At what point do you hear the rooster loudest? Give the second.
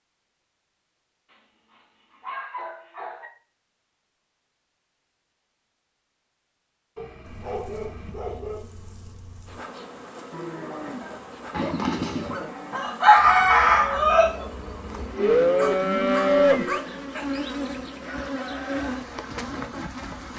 13 s.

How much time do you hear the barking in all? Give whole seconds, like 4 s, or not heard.
7 s.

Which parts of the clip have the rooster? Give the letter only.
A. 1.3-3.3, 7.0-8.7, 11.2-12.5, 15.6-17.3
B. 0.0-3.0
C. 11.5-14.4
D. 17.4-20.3
C.